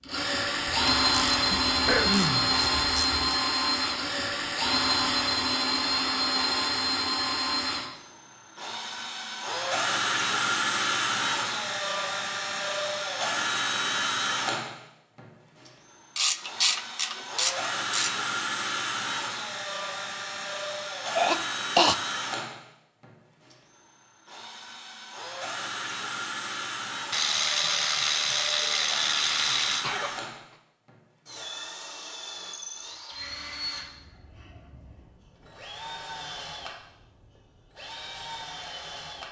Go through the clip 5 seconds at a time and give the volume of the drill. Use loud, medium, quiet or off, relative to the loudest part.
loud, loud, loud, medium, medium, medium, quiet, quiet.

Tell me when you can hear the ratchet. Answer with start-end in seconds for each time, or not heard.
0.7-3.4, 16.1-18.3, 27.1-29.9.